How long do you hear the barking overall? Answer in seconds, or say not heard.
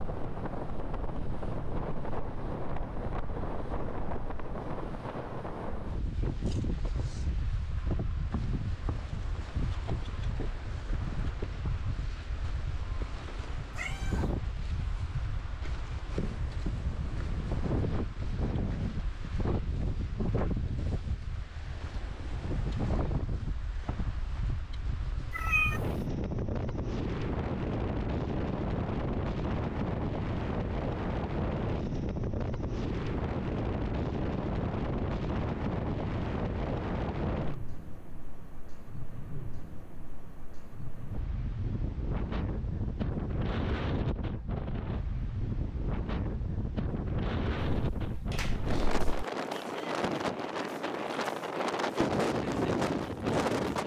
not heard.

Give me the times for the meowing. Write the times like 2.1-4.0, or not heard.
13.8-14.3, 25.3-26.0, 47.8-49.0.